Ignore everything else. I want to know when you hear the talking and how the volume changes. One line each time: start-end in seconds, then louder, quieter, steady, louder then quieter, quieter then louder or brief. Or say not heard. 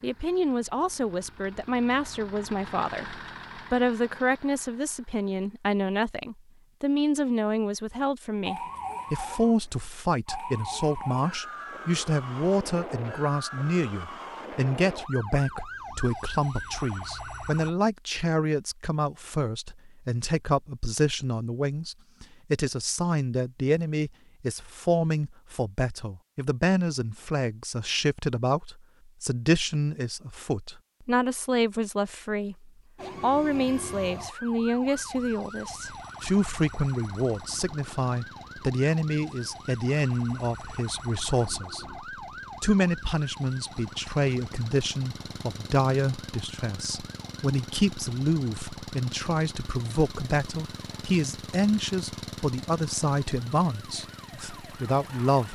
0.0-55.5 steady.